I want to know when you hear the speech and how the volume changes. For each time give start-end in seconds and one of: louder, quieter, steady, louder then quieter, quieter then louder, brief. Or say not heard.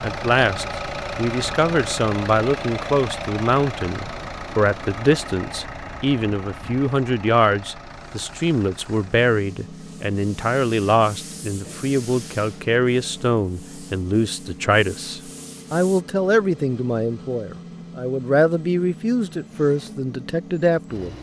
0.0-21.1 steady.